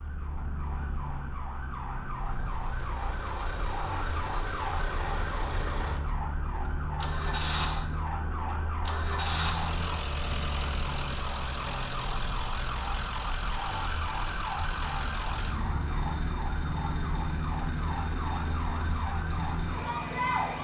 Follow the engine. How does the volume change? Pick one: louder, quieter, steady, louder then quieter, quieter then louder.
steady.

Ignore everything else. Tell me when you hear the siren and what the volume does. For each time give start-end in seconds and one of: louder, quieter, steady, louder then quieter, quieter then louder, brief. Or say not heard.
0.0-20.5 steady.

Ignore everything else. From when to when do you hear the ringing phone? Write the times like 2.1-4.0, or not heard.
not heard.